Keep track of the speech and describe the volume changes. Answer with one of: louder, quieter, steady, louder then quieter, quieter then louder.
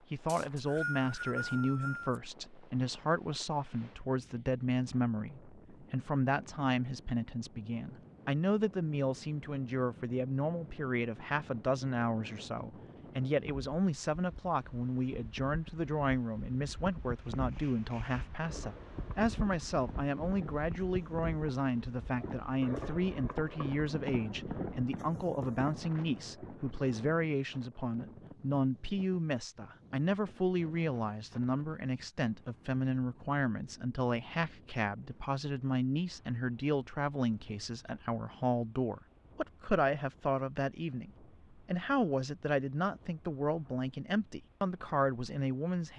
steady.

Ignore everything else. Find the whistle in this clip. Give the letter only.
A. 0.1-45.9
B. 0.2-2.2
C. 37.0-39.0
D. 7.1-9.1
B.